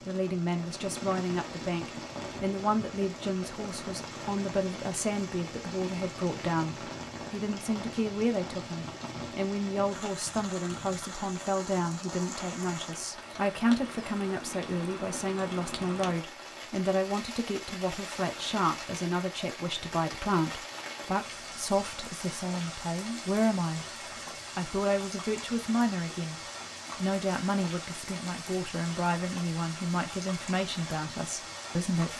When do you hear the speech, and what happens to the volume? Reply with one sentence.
The speech can be heard from 0.0 to 32.1 s, at a steady volume.